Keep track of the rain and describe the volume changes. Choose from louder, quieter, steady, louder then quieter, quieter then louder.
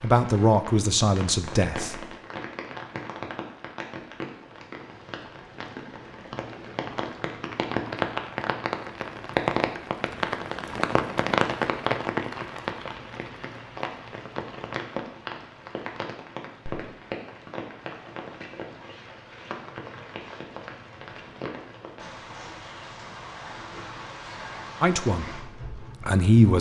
louder then quieter.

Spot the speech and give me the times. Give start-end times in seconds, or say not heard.
0.0-2.0, 24.8-26.5.